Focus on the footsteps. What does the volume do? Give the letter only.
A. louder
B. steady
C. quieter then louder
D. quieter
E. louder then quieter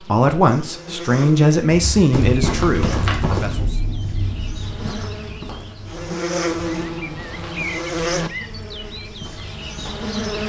D.